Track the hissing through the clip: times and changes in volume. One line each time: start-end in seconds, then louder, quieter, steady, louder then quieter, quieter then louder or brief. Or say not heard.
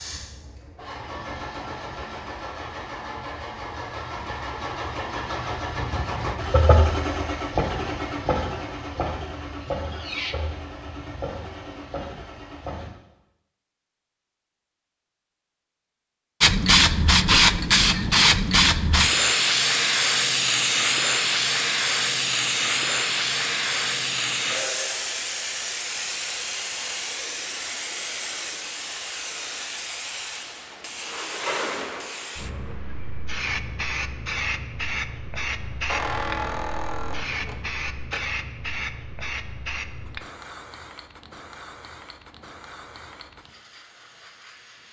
16.4-44.8 quieter.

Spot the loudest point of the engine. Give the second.
7 s.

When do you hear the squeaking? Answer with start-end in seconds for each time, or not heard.
9.6-10.3, 35.9-38.2.